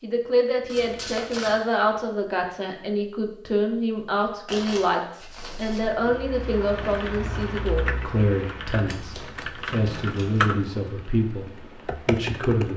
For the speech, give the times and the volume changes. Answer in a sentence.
You can hear the speech from 0.0 to 12.7 s, at a steady volume.